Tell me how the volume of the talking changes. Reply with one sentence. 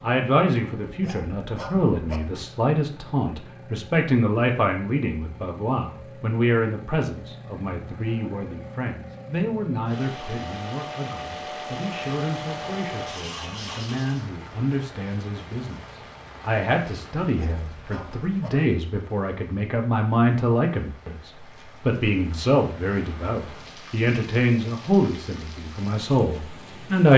The volume of the talking goes down, then up.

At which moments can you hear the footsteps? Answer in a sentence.
The footsteps can't be heard in this clip.